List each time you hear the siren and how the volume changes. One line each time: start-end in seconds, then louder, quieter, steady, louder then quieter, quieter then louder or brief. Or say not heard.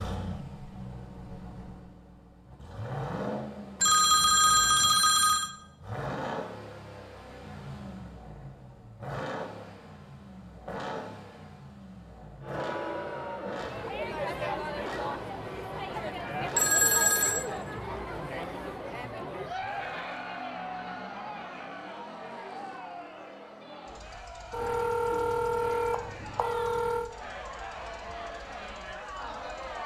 not heard.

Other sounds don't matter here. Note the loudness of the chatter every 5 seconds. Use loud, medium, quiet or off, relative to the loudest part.
off, off, loud, loud, medium, medium.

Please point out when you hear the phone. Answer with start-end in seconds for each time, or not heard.
3.8-5.5, 16.6-17.4, 24.5-27.1.